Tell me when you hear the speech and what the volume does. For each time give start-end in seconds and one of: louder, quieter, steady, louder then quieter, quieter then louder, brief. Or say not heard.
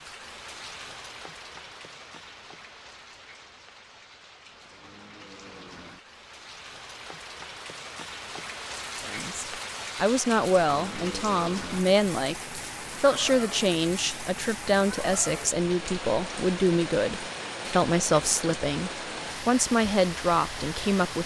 9.1-21.2 steady.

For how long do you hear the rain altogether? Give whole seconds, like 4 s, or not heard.
21 s.